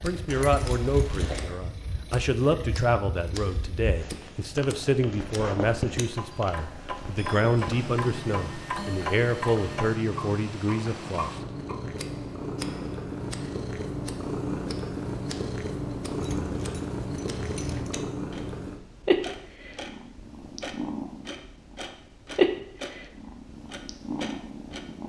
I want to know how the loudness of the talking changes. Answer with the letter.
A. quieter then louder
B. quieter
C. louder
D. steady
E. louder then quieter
D.